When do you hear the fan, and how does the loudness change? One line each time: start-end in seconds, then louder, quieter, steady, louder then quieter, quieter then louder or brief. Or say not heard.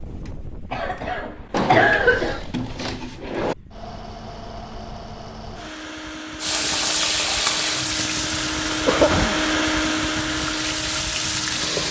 0.0-11.8 louder.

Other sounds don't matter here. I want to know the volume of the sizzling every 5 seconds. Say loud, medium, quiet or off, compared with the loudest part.
off, loud, loud.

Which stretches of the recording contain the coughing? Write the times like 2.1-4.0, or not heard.
0.7-2.4, 8.8-9.4.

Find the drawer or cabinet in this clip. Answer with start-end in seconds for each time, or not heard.
1.5-3.5, 8.9-9.4.